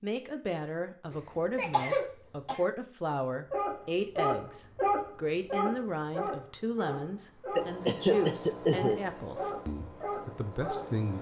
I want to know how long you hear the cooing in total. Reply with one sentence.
You can't hear the cooing here.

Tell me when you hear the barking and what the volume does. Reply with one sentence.
The barking can be heard from 3.5 to 10.9 s, getting quieter.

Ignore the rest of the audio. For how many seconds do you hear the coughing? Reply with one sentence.
You can hear the coughing for 3 seconds altogether.